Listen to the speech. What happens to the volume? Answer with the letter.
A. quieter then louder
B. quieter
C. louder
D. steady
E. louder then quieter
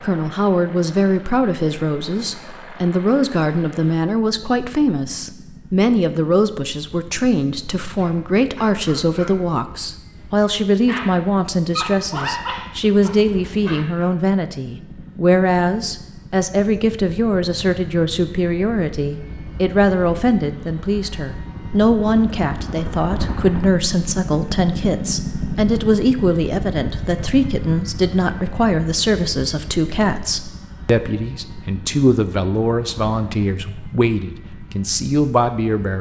D.